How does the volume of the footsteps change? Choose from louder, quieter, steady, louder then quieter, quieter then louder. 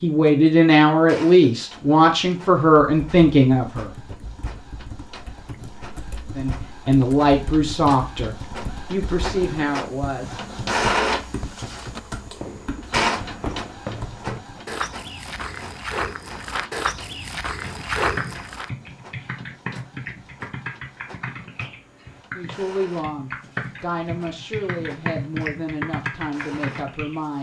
louder.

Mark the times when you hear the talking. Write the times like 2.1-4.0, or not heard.
0.0-3.9, 6.3-10.4, 22.4-27.3.